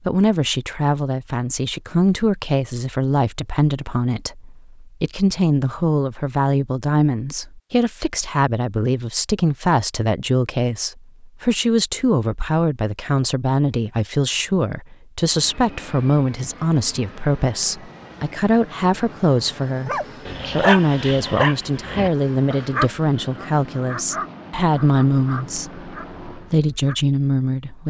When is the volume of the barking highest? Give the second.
21 s.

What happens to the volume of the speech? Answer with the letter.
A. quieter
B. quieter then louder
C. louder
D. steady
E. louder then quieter
D.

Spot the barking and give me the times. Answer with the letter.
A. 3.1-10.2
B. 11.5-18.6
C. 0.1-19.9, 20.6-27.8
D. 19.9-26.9
D.